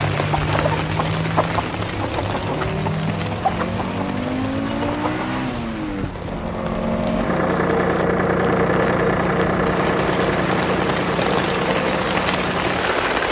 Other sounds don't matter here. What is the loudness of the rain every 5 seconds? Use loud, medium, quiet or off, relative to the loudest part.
medium, medium, loud.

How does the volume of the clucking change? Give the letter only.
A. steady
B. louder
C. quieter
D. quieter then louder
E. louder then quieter
C.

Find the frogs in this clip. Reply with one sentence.
You can't hear the frogs here.